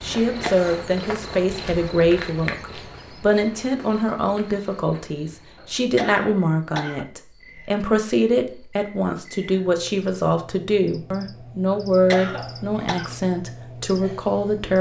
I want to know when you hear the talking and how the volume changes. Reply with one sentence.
You can hear the talking from 0.0 to 14.7 s, at a steady volume.